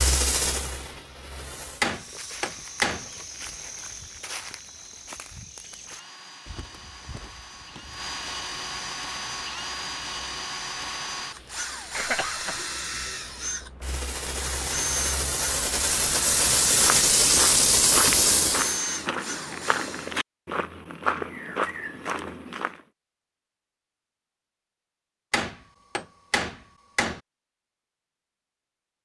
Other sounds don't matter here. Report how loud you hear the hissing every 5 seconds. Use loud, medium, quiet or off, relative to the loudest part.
medium, quiet, quiet, loud, off, off.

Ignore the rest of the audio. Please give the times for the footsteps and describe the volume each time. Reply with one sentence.
The footsteps can be heard from 1.8 to 8.1 s, getting quieter; and from 16.6 to 22.8 s, at a steady volume.